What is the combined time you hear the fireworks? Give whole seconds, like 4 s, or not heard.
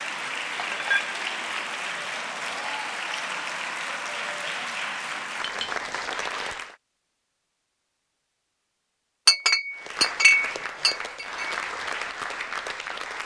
not heard.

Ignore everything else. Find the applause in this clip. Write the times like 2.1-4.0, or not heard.
0.0-6.8, 9.7-13.2.